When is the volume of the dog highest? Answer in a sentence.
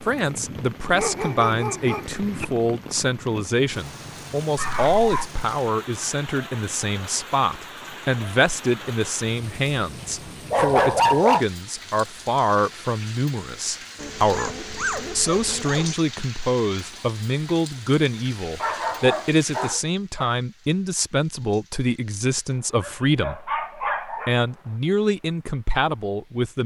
The volume of the dog peaks at 11 seconds.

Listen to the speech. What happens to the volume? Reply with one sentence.
The volume of the speech stays about the same.